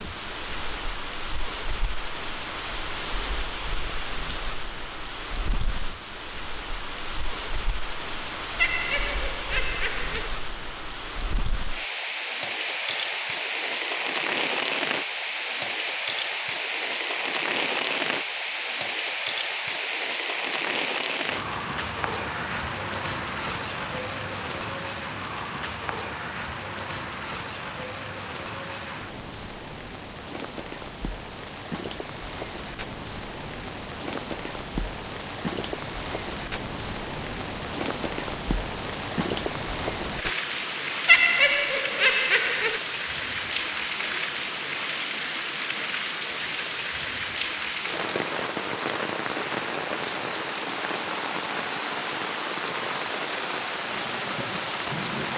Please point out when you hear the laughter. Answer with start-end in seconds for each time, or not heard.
8.6-10.3, 41.0-42.8.